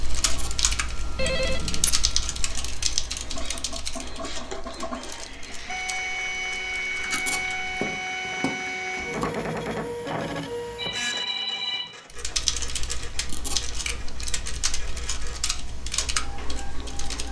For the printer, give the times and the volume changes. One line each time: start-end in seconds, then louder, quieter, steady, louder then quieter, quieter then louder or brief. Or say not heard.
0.1-17.2 louder then quieter.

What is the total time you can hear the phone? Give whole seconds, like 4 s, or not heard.
3 s.